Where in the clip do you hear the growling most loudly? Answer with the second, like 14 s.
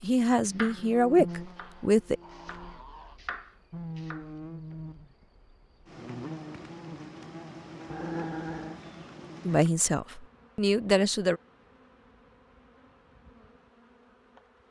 8 s.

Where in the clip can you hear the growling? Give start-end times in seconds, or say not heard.
1.6-3.2, 7.8-8.8.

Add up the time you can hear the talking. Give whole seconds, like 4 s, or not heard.
4 s.